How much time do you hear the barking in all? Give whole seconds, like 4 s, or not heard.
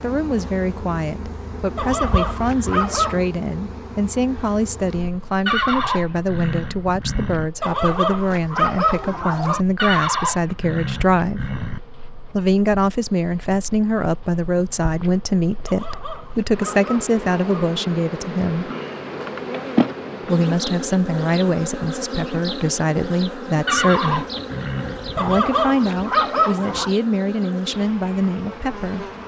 7 s.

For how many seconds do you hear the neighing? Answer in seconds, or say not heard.
6 s.